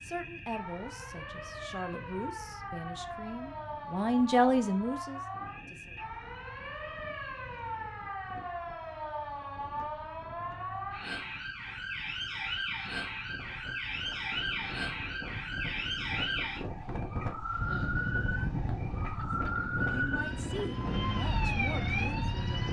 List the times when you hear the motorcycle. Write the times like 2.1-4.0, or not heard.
17.4-22.6.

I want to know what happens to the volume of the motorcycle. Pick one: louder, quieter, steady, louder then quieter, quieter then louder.
louder.